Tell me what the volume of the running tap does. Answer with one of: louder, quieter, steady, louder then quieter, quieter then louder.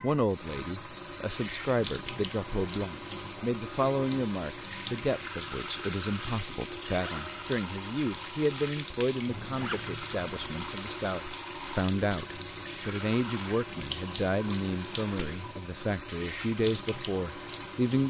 steady.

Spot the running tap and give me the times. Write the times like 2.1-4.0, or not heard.
0.0-18.0.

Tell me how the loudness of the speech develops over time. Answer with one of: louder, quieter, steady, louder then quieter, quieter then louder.
steady.